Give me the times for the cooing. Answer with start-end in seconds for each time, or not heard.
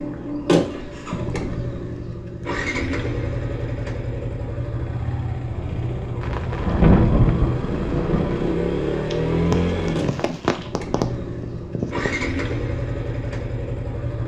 9.1-12.1.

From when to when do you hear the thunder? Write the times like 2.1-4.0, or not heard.
6.2-8.6.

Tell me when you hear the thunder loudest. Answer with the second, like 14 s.
7 s.